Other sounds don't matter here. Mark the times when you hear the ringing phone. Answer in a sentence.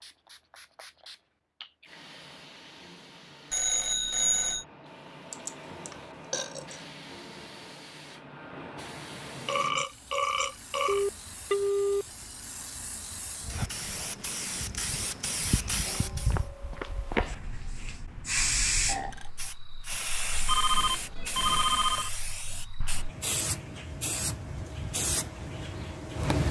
The ringing phone can be heard from 3.5 to 4.7 s, from 10.8 to 12.1 s and from 20.4 to 22.1 s.